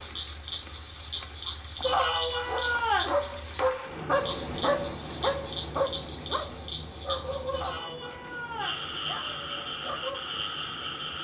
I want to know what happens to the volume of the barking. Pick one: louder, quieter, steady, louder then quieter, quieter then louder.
louder then quieter.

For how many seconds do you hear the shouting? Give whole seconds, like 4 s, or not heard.
3 s.